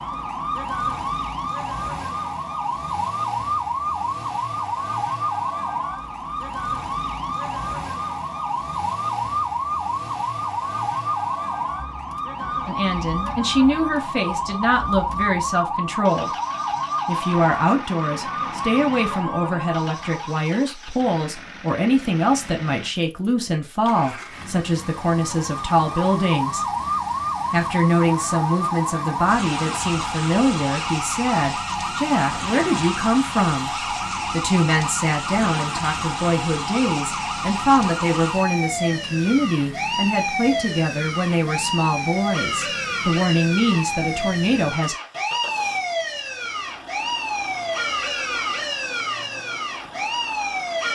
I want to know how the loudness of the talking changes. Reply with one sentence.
The volume of the talking stays about the same.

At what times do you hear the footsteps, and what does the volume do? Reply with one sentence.
You can't hear the footsteps here.